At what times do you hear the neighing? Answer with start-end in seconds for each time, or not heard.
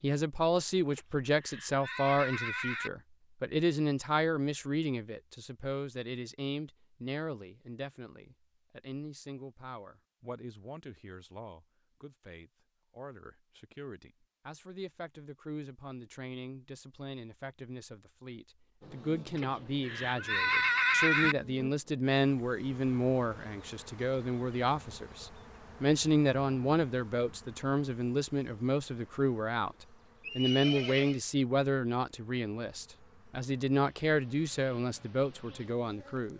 0.9-2.9, 19.4-21.4, 30.2-31.2.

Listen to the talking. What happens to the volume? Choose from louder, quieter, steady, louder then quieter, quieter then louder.
quieter then louder.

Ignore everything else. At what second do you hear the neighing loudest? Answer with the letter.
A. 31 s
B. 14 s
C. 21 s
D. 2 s
C.